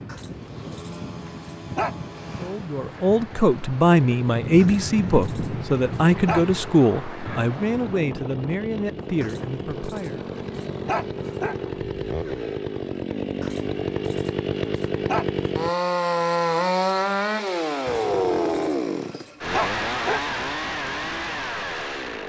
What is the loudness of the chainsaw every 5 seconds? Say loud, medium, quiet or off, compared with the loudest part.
quiet, quiet, medium, loud, medium.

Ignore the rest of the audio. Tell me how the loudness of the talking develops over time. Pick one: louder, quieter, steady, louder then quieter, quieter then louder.
quieter.